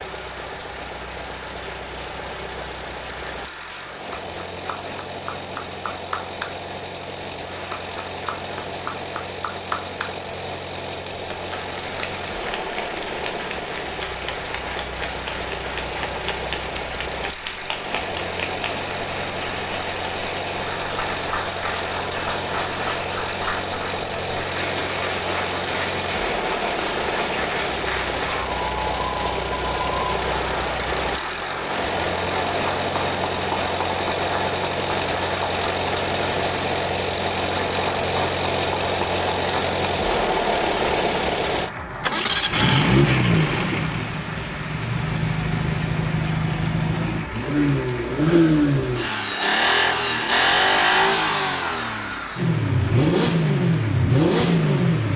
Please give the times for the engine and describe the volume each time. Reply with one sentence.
You can hear the engine from 0.0 to 55.1 s, getting louder.